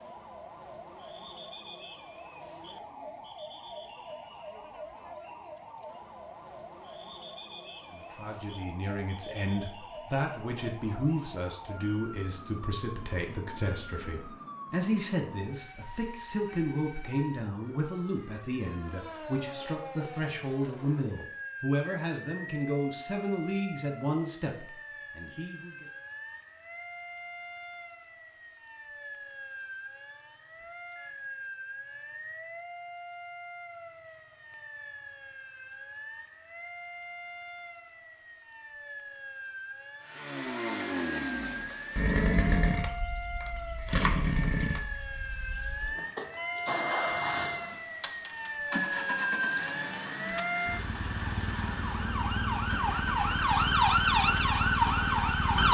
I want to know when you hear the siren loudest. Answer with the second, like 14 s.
54 s.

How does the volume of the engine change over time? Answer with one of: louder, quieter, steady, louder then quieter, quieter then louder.
quieter.